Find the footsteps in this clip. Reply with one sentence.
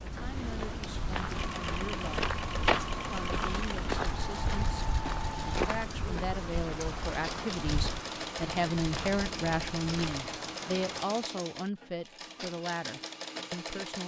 The footsteps can be heard from 0.0 to 10.2 s.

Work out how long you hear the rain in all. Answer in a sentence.
The rain can be heard for 11 seconds in total.